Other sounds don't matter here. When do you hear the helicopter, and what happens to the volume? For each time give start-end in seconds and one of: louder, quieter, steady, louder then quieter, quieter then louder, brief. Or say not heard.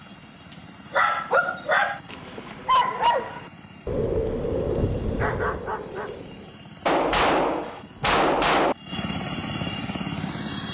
0.0-10.6 louder.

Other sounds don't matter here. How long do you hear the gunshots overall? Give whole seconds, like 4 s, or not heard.
2 s.